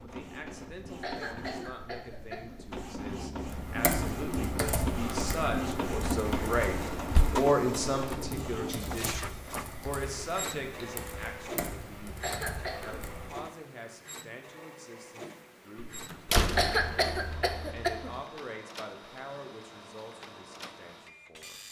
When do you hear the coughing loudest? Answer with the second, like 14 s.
17 s.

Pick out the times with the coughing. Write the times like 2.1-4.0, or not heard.
1.0-2.6, 12.2-12.9, 16.6-18.1.